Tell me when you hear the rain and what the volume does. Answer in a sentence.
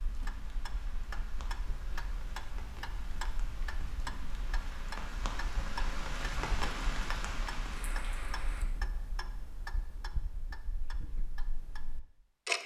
You can hear the rain from 0.0 to 8.7 s, getting louder.